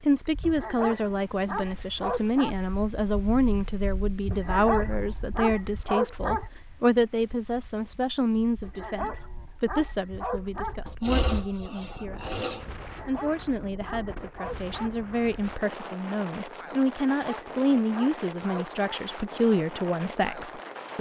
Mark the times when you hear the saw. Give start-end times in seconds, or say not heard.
10.8-12.7.